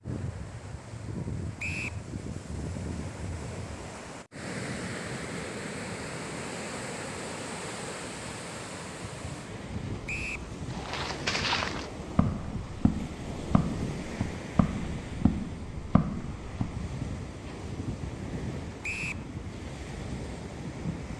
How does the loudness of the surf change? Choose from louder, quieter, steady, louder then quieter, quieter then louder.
steady.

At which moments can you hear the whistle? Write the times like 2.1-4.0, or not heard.
1.6-2.0, 10.1-10.5, 18.8-19.2.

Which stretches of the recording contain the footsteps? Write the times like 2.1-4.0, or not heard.
10.7-16.8.